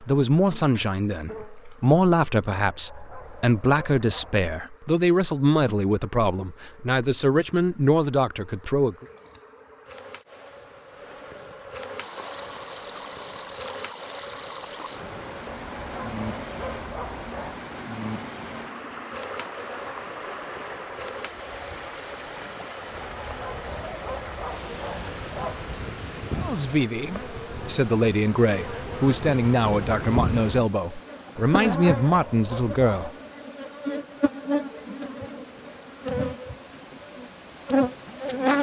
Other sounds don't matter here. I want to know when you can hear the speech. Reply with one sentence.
You can hear the speech from 0.0 to 9.1 s and from 26.4 to 33.1 s.